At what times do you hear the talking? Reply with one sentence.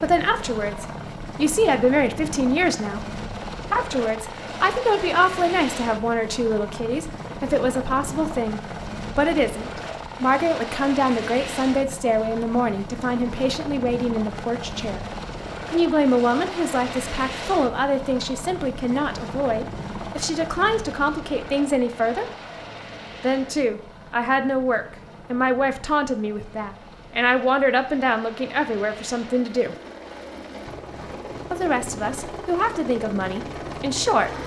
You can hear the talking from 0.0 to 3.0 s, from 3.7 to 15.1 s, from 15.7 to 22.2 s, from 23.2 to 29.8 s and from 31.5 to 34.4 s.